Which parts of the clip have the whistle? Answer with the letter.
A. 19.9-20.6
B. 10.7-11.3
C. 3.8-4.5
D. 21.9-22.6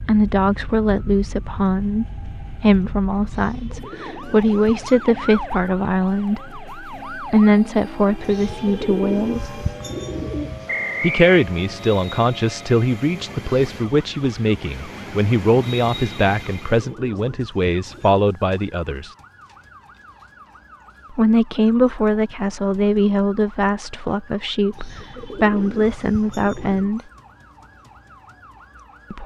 B.